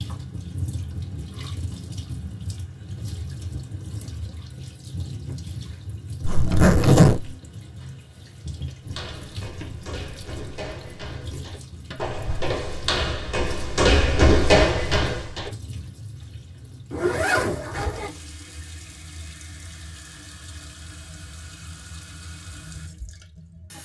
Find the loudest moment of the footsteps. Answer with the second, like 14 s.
14 s.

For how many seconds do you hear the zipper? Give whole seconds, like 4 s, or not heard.
2 s.